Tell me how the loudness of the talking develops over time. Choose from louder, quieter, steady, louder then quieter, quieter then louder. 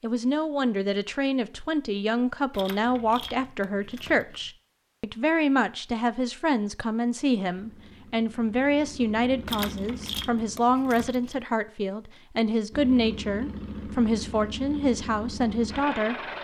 steady.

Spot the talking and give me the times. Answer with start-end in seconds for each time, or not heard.
0.0-16.1.